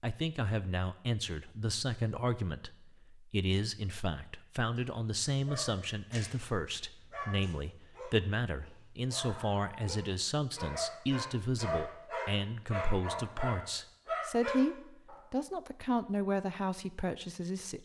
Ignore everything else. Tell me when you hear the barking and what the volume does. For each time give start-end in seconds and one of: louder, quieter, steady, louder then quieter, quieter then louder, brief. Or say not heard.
4.8-15.2 louder.